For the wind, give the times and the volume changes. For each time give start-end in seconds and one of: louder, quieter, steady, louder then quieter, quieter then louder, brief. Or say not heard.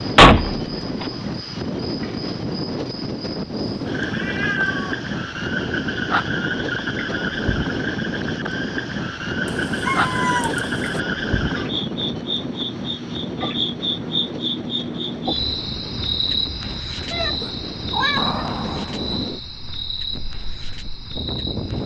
0.0-21.8 quieter.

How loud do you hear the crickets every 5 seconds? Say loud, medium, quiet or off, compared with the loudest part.
medium, loud, loud, loud, medium.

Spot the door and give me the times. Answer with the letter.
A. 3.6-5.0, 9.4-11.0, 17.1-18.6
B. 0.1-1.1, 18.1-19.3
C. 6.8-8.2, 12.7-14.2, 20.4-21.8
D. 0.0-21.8
B.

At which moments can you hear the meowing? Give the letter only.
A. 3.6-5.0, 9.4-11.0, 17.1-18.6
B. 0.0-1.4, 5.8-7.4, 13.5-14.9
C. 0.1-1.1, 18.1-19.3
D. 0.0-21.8
A.